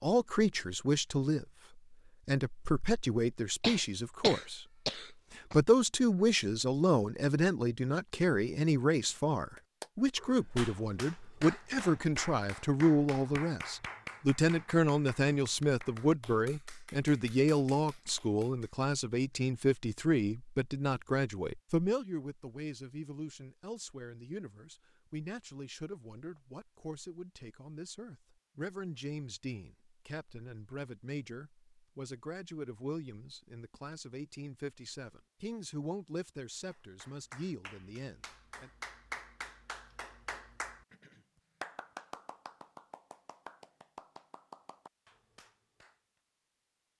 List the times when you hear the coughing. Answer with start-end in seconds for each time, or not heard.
3.6-5.6.